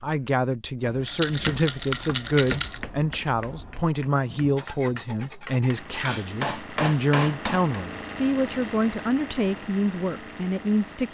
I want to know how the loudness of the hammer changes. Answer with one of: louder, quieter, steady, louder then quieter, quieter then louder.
quieter then louder.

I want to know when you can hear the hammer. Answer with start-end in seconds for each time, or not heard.
1.4-7.8.